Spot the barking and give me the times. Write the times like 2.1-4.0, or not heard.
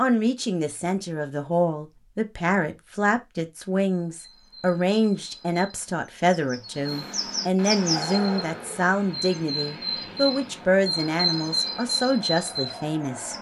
not heard.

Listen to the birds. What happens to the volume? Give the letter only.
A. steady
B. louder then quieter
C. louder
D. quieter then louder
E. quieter
C.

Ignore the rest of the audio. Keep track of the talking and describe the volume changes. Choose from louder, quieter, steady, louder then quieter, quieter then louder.
steady.